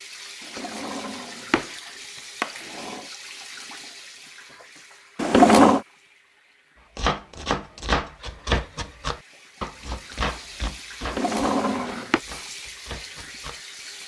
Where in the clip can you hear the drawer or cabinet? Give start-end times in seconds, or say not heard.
0.6-1.6, 2.4-3.0, 5.2-5.8, 11.0-12.2.